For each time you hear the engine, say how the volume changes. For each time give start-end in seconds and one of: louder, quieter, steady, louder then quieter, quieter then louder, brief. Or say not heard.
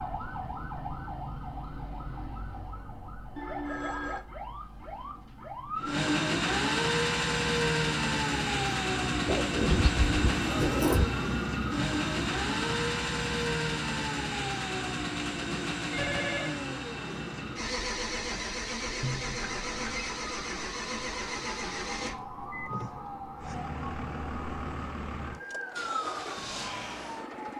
5.8-27.5 quieter.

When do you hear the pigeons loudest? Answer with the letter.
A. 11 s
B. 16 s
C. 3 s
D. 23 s
A.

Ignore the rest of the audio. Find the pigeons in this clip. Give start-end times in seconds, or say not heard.
9.2-11.1.